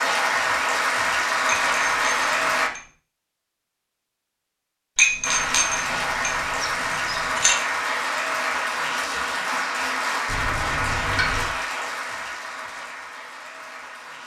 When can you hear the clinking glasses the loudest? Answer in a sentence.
The volume of the clinking glasses peaks at 5 seconds.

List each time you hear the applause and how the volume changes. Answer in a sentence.
You can hear the applause briefly from 0.0 to 2.7 s; and from 5.2 to 14.2 s, getting quieter.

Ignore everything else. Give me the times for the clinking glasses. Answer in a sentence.
The clinking glasses can be heard from 1.4 to 2.9 s, from 5.0 to 7.5 s and from 10.2 to 11.6 s.